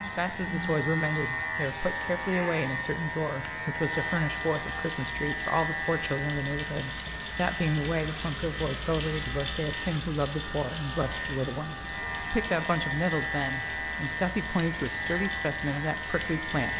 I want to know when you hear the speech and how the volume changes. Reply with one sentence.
The speech can be heard from 0.0 to 16.7 s, at a steady volume.